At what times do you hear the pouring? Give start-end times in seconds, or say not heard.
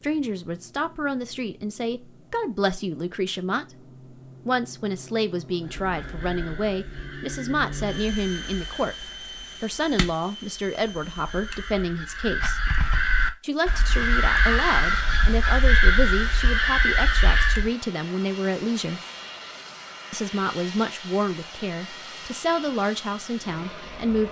not heard.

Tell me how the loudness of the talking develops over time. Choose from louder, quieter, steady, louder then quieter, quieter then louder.
steady.